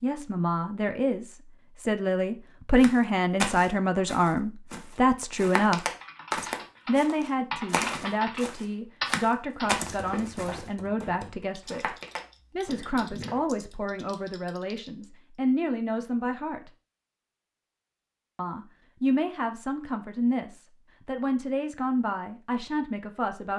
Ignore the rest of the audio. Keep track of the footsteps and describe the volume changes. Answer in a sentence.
The loudness of the footsteps goes down.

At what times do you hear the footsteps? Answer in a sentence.
You can hear the footsteps from 2.8 to 13.4 s.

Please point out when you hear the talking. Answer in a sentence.
The talking can be heard from 0.0 to 5.8 s, from 6.8 to 11.9 s, from 12.6 to 16.7 s and from 18.4 to 23.5 s.